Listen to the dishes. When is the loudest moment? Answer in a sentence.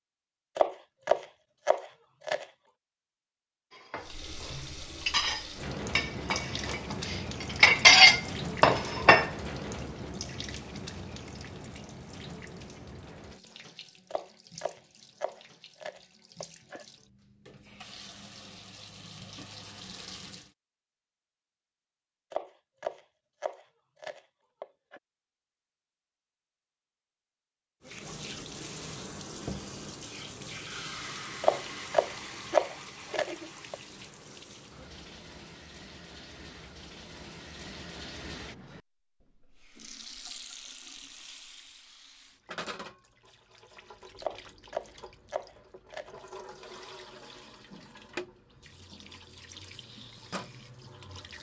The volume of the dishes peaks at 8 seconds.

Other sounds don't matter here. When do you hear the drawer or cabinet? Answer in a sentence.
You can't hear the drawer or cabinet here.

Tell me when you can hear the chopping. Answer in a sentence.
The chopping can be heard from 0.6 to 2.5 s, from 14.1 to 16.9 s, from 22.3 to 25.0 s, from 31.4 to 33.8 s and from 44.2 to 46.1 s.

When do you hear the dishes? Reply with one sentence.
The dishes can be heard from 3.8 to 9.3 s.